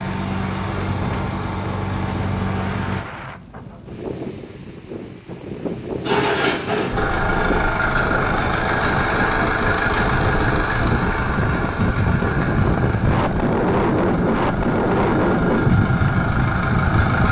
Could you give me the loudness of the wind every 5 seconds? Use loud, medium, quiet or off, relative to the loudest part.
quiet, medium, loud, loud.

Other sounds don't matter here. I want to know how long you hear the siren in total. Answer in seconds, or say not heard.
not heard.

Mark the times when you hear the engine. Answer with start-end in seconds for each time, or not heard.
0.0-3.0, 6.0-17.2.